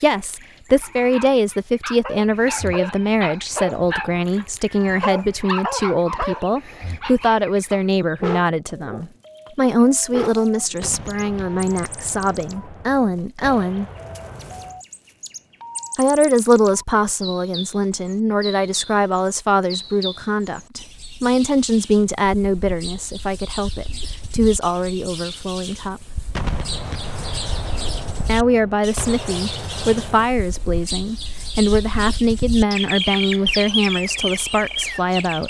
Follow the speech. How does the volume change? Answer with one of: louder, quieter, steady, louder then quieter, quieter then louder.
steady.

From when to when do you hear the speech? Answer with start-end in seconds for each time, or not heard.
0.0-13.8, 15.9-26.1, 28.2-35.4.